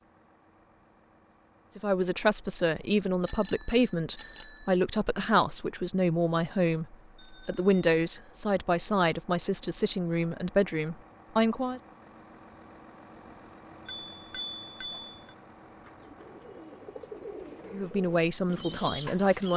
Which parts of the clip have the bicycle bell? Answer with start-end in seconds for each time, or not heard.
3.2-4.7, 7.2-7.8, 13.8-15.3.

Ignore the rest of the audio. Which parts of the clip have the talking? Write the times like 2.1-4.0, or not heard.
1.8-11.8, 17.7-19.5.